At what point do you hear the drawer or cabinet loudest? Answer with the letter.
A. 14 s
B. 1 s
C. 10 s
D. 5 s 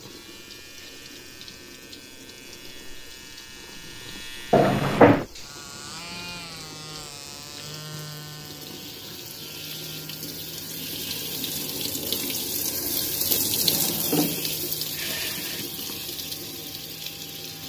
D.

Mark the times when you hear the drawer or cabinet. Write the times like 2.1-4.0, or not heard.
4.5-5.2, 12.8-14.4.